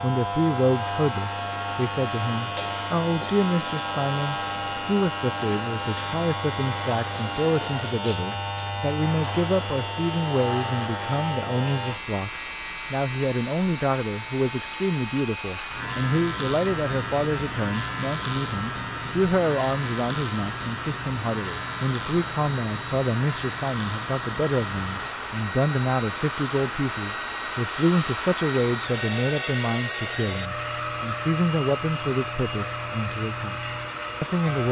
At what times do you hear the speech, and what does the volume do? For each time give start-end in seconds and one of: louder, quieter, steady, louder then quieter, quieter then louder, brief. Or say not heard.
0.0-34.6 steady.